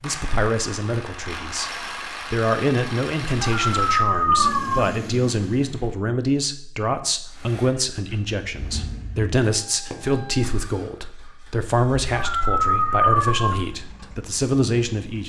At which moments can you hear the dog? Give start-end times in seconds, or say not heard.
3.4-4.8, 12.1-13.6.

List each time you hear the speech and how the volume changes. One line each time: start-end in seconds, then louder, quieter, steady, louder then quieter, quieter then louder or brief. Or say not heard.
0.0-15.2 steady.